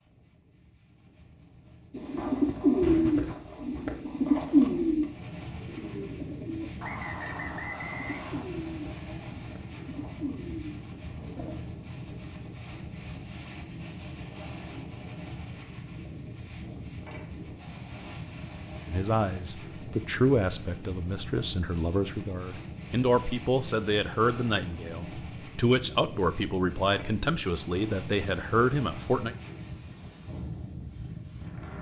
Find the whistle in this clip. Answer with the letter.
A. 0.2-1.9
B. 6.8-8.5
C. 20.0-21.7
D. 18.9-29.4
B.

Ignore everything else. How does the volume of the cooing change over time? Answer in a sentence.
The volume of the cooing goes down.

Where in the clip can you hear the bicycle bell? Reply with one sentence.
The bicycle bell can't be heard in this clip.